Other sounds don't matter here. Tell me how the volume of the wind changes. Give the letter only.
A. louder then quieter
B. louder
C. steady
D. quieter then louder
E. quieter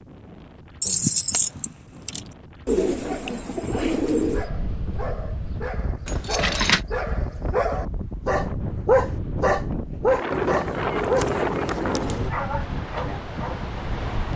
B.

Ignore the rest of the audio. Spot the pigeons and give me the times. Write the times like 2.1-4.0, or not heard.
2.6-4.5, 10.3-12.3.